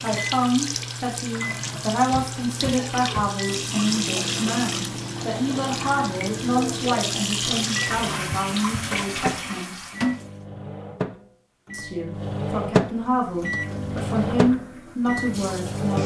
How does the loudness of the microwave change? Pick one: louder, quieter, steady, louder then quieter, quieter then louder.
louder.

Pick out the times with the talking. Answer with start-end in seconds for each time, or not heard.
0.0-9.8, 11.7-16.0.